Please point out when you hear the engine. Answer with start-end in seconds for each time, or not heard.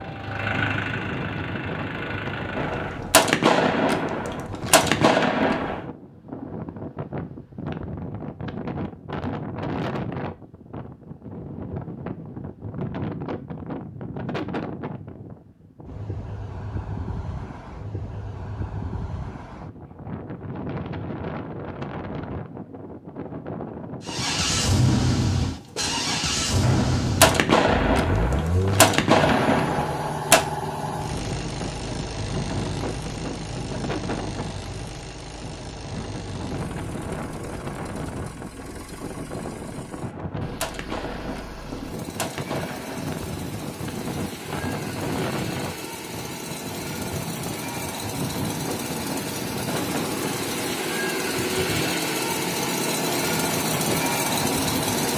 0.0-3.0, 24.0-55.1.